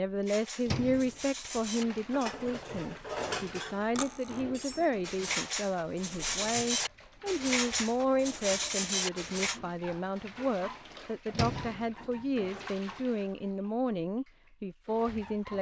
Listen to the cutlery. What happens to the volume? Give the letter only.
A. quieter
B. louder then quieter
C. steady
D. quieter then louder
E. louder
E.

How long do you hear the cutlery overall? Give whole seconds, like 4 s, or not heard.
9 s.